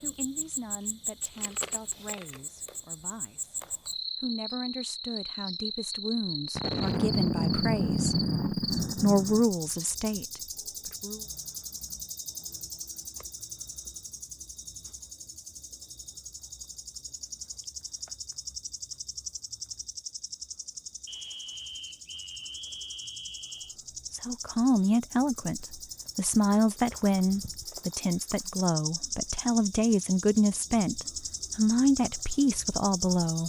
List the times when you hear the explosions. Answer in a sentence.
The explosions can be heard from 6.5 to 9.4 s.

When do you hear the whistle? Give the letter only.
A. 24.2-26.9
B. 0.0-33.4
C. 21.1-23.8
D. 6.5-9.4
C.